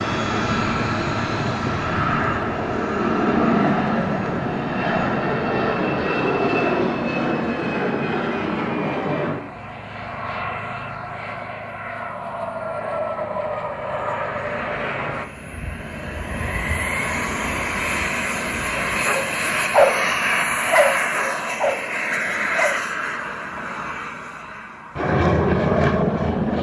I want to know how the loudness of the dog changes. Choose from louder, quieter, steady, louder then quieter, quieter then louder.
quieter.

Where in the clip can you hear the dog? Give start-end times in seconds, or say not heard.
18.8-22.8.